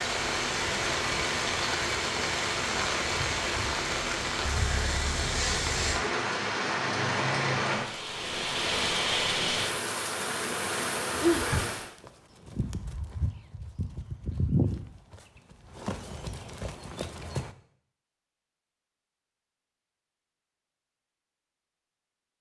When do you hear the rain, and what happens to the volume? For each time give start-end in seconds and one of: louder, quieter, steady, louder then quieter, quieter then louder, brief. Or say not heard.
0.0-11.9 steady.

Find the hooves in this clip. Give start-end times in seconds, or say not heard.
11.1-17.6.